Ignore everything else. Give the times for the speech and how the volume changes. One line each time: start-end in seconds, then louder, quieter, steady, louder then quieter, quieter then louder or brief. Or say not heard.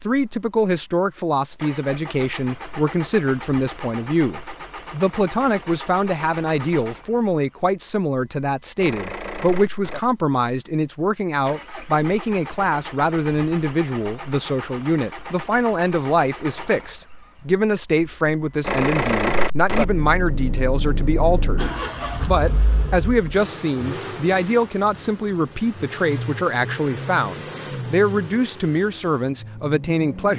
0.0-30.3 steady.